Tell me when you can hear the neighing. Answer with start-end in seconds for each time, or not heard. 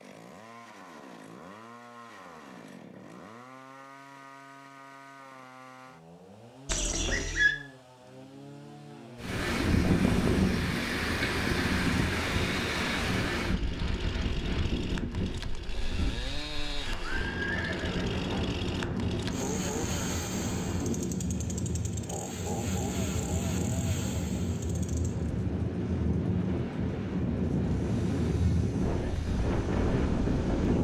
6.7-7.5, 16.8-18.5.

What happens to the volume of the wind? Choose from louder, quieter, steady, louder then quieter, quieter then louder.
quieter then louder.